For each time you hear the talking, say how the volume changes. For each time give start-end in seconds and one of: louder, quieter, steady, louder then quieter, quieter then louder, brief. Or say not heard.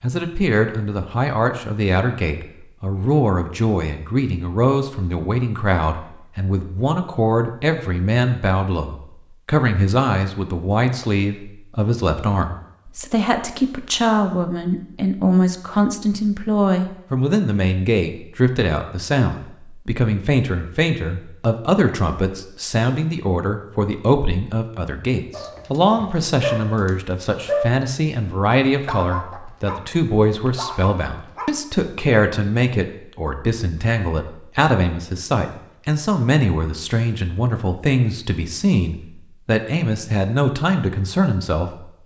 0.0-41.9 steady.